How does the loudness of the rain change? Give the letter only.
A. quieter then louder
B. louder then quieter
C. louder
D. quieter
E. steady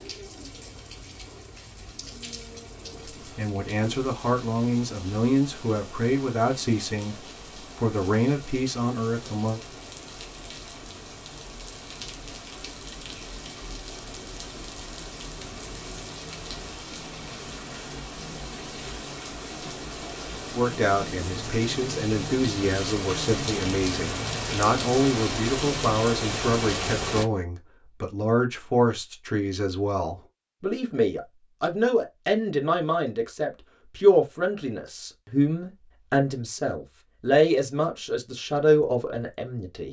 C.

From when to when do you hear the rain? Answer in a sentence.
You can hear the rain from 0.0 to 27.2 s.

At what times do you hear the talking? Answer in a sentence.
You can hear the talking from 3.2 to 9.6 s and from 20.5 to 39.8 s.